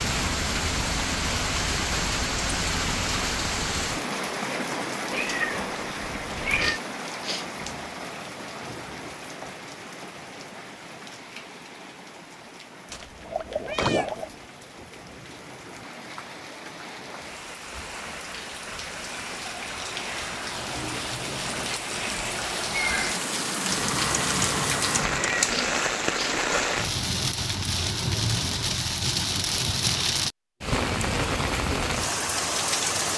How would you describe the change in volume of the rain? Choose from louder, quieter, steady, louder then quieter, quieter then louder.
quieter then louder.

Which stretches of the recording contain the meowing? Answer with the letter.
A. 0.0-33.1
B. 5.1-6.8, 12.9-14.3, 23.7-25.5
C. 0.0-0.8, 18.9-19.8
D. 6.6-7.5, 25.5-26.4
B.